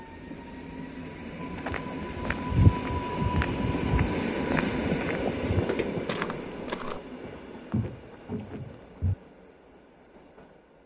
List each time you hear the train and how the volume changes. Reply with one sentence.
The train can be heard from 0.0 to 10.8 s, getting louder then quieter.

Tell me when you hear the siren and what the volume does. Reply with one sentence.
The siren can't be heard in this clip.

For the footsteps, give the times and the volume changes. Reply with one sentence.
You can hear the footsteps from 1.6 to 9.2 s, getting quieter.